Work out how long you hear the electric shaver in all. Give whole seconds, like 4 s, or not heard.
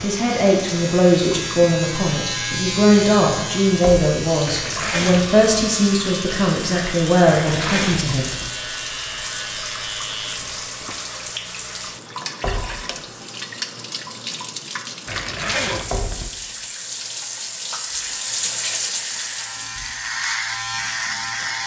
15 s.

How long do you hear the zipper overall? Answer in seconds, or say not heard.
4 s.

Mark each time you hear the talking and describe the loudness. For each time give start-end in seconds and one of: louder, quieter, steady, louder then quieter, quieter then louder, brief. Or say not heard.
0.0-8.3 steady.